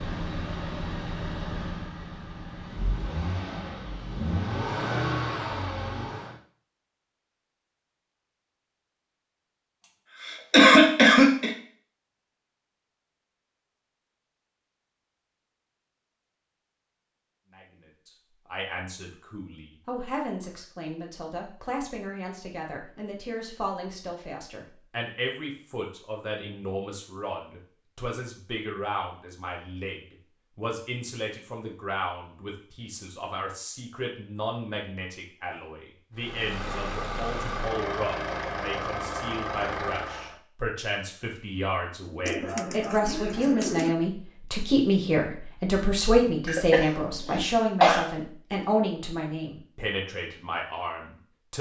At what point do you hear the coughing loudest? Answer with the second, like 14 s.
11 s.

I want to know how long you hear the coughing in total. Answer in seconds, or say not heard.
3 s.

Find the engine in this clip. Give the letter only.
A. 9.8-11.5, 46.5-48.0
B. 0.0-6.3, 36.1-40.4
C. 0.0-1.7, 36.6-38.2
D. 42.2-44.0
B.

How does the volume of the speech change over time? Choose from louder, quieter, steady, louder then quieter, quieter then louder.
louder.